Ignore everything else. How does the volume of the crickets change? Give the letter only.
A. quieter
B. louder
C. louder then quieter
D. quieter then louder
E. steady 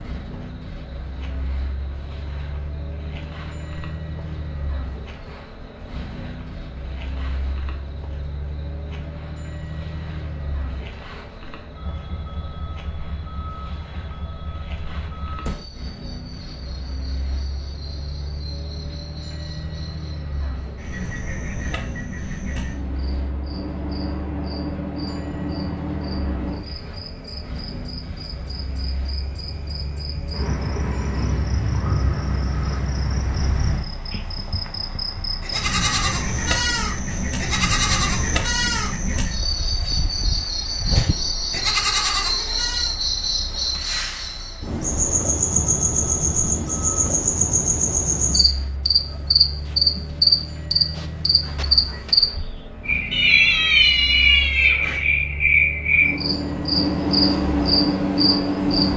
B.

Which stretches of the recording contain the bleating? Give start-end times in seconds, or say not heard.
35.4-43.0.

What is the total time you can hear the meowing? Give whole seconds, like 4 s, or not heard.
2 s.